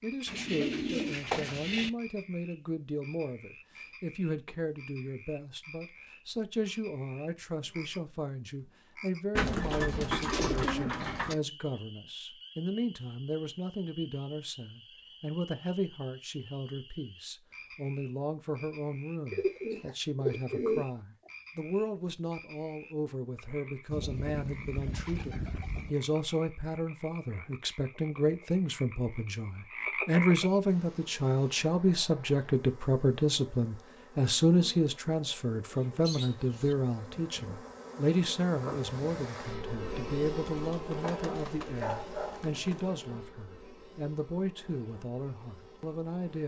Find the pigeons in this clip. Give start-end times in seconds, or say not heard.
0.2-1.9, 9.3-11.3, 19.3-21.3, 23.9-25.9, 35.6-36.8, 40.5-42.9.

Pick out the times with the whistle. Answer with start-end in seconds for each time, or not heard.
not heard.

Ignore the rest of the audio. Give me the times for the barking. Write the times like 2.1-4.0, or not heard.
41.0-42.5.